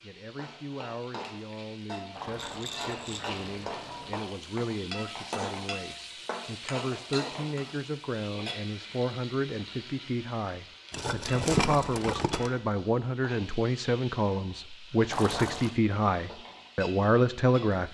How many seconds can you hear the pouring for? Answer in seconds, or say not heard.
3 s.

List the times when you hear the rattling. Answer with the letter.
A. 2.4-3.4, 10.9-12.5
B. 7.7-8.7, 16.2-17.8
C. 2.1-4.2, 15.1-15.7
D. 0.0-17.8
A.